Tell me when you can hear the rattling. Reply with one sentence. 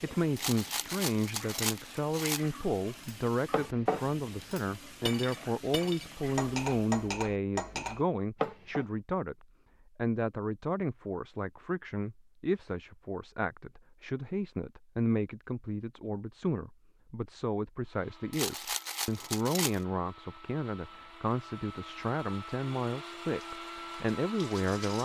The rattling can be heard from 0.3 to 2.5 s and from 18.3 to 19.8 s.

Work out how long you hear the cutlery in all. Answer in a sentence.
The cutlery can be heard for 6 seconds in total.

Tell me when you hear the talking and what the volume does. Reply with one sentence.
You can hear the talking from 0.0 to 25.0 s, at a steady volume.